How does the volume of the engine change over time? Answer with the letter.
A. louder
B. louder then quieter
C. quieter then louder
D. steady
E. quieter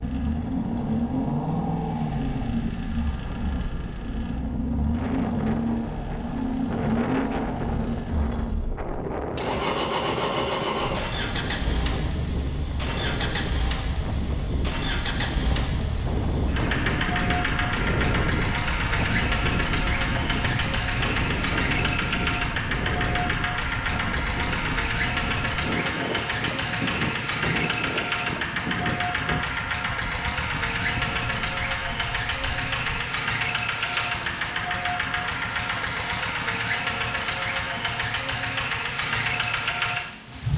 D.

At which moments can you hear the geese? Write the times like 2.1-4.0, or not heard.
not heard.